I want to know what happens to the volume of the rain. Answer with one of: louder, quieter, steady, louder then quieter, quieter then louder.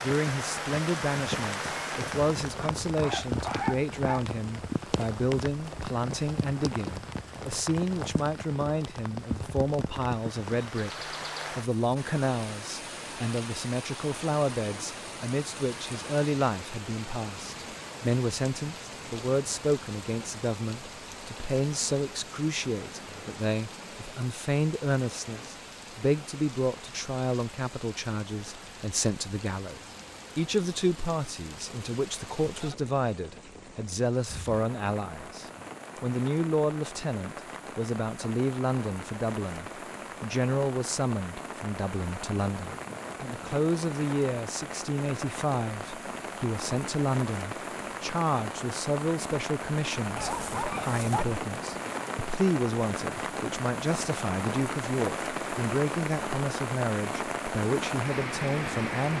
quieter then louder.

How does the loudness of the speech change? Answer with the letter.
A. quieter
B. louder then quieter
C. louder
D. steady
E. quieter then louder
D.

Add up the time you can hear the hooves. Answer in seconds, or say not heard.
not heard.